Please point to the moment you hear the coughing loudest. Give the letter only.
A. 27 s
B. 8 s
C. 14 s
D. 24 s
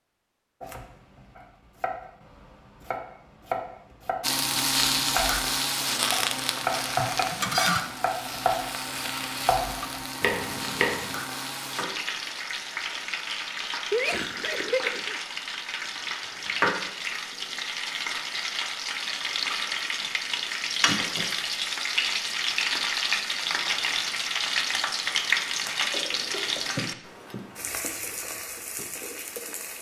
C.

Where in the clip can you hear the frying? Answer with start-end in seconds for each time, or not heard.
4.2-29.7.